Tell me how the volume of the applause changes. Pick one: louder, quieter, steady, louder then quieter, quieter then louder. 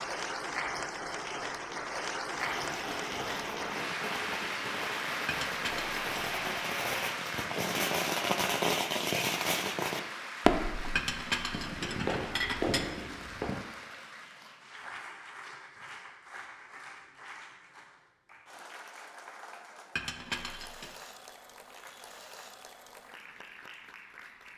quieter.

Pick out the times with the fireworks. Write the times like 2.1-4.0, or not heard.
2.3-13.7.